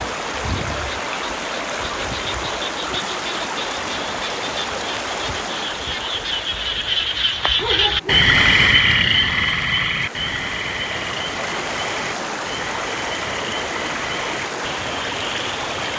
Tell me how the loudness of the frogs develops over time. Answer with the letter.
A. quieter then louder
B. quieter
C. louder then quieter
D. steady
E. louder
C.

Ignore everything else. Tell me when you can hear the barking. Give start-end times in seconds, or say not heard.
7.6-8.3.